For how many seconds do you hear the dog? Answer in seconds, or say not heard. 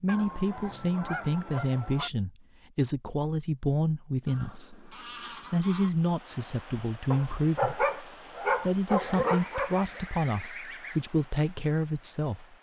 3 s.